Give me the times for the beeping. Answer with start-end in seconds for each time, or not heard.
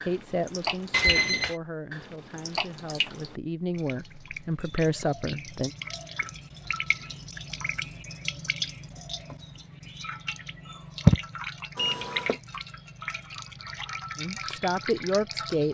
0.9-1.6, 11.8-12.4.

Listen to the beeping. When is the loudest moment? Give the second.
1 s.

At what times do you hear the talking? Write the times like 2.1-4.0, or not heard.
0.1-5.7, 14.2-15.6.